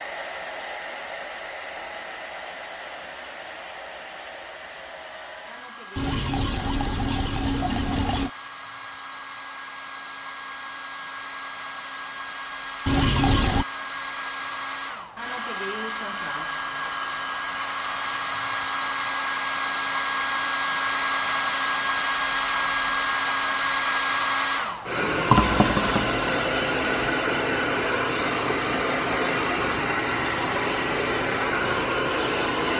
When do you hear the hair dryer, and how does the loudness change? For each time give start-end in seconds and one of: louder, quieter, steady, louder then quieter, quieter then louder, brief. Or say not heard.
0.0-32.7 louder.